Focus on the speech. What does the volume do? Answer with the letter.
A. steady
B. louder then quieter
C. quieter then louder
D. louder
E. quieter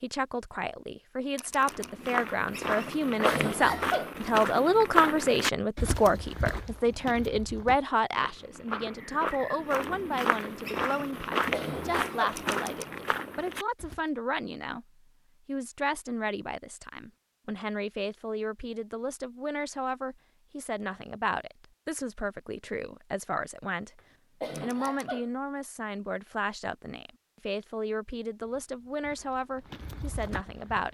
E.